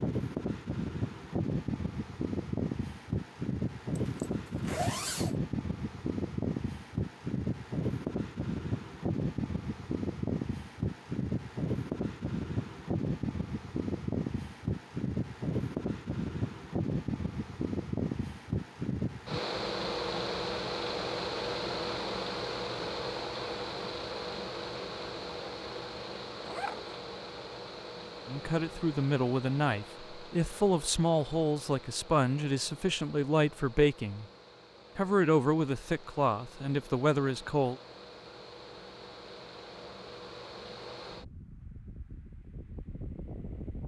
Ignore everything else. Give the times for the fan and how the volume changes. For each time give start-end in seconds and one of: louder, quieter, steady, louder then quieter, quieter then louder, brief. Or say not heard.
0.0-43.8 quieter.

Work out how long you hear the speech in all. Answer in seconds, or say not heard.
9 s.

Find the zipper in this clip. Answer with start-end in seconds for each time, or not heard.
4.0-5.3, 26.4-26.9.